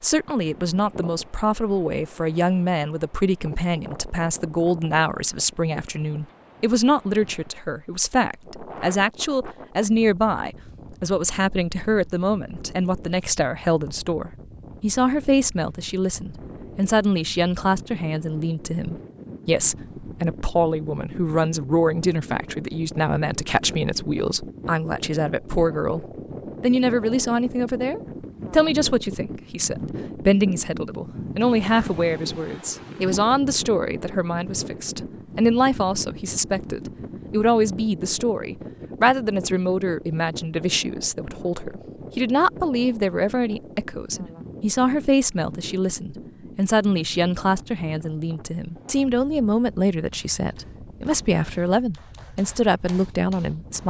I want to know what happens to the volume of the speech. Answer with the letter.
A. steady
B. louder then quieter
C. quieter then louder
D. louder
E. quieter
A.